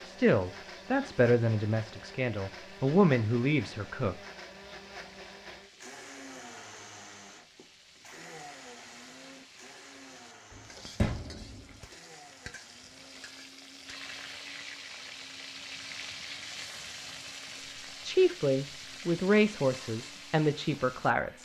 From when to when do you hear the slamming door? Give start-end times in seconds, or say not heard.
10.5-11.8.